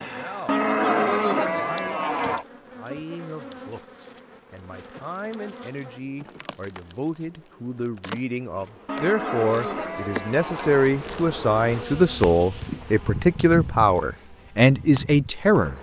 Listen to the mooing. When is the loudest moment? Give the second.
1 s.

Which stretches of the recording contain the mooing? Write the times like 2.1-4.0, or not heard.
0.5-2.5, 8.8-10.9.